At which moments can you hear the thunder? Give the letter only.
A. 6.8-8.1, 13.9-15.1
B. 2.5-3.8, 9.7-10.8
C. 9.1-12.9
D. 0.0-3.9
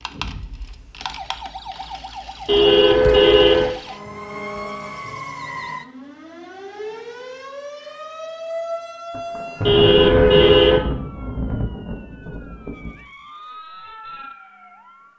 C.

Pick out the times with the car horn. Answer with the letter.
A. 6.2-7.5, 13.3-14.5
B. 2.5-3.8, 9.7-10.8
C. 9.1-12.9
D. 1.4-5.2
B.